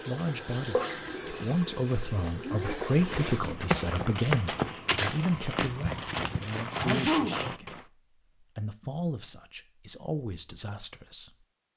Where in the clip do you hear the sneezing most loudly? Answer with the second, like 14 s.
7 s.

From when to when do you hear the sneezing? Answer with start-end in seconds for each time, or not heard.
2.4-3.6, 6.8-7.4.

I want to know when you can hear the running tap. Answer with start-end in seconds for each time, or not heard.
0.0-3.4.